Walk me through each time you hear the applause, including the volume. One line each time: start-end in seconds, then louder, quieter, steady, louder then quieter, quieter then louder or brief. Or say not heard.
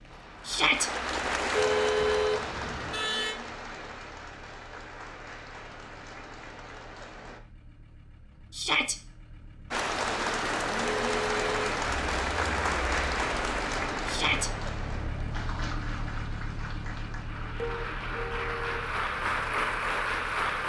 0.0-7.4 quieter
9.7-20.6 quieter then louder.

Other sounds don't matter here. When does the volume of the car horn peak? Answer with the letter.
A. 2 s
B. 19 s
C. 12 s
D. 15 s
A.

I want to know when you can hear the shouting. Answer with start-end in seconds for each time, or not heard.
0.5-0.9, 8.5-8.9, 14.1-14.5.